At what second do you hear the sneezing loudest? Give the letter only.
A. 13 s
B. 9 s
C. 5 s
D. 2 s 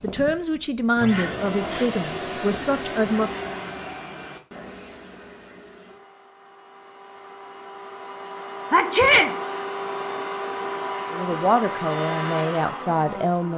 B.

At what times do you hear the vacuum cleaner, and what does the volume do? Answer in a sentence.
You can hear the vacuum cleaner from 0.0 to 13.5 s, getting quieter then louder.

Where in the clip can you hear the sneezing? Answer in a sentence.
The sneezing can be heard from 0.9 to 1.9 s and from 8.7 to 9.3 s.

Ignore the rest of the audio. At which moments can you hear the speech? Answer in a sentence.
You can hear the speech from 0.0 to 3.5 s and from 11.1 to 13.5 s.